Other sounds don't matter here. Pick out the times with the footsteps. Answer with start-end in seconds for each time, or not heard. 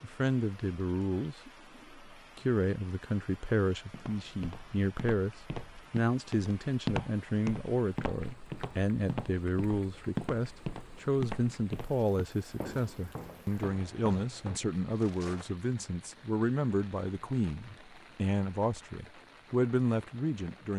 3.9-15.5.